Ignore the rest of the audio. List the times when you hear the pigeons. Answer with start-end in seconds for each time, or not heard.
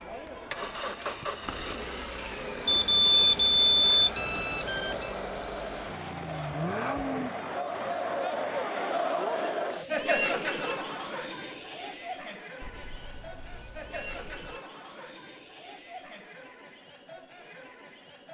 not heard.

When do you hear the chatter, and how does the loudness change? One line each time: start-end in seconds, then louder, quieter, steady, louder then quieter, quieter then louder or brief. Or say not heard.
0.0-18.2 louder then quieter.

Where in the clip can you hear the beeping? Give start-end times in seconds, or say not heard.
2.6-5.2, 12.6-14.6.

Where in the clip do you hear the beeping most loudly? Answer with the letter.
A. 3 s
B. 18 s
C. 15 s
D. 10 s
A.